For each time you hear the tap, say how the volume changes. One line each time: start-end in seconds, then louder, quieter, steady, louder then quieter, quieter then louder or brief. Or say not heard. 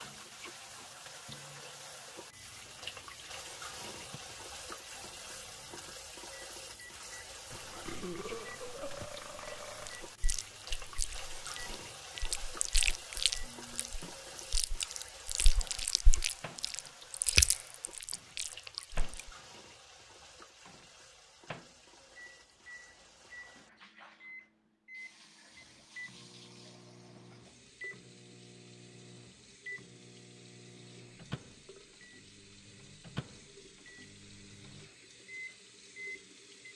0.0-36.7 quieter.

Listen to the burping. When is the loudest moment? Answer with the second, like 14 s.
8 s.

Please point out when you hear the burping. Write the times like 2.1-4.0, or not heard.
7.5-10.1.